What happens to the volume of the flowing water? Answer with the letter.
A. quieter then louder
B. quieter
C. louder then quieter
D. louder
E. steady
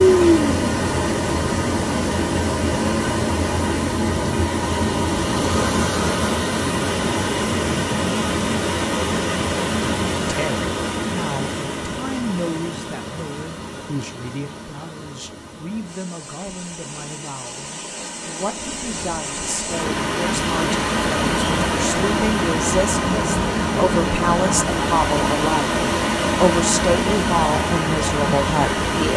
A.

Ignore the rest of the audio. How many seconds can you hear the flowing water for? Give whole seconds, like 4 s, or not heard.
29 s.